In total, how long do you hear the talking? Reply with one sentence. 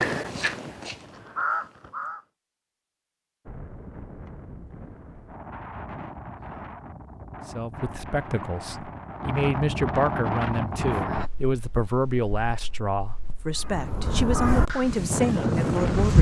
The talking can be heard for 9 seconds in total.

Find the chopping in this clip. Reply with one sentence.
The chopping can't be heard in this clip.